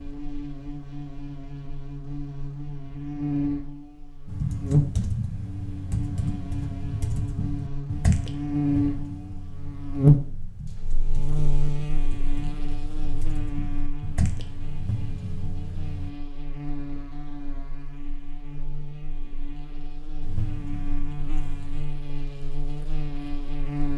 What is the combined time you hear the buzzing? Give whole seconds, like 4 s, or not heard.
24 s.